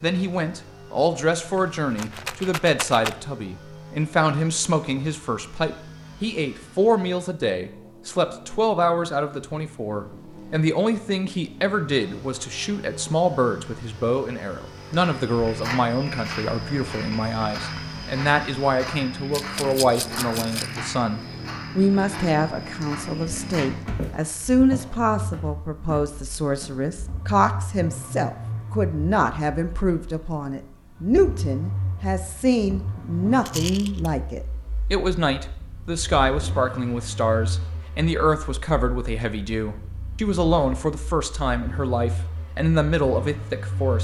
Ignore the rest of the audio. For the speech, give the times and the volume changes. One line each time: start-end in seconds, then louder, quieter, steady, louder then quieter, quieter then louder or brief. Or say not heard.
0.0-43.9 steady.